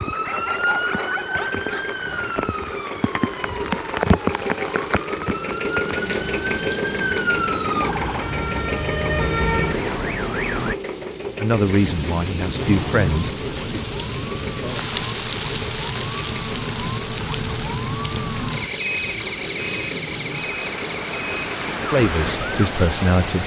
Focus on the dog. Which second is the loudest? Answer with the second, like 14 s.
1 s.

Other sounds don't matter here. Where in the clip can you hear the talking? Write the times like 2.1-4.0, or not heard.
11.4-13.8, 21.9-23.4.